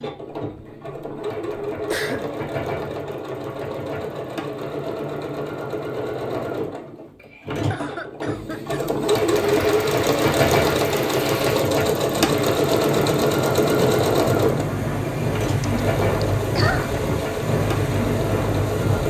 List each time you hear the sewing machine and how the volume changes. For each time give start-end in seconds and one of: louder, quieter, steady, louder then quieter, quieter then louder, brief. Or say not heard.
0.0-19.0 louder then quieter.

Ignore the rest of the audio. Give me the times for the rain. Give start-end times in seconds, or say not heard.
9.2-19.0.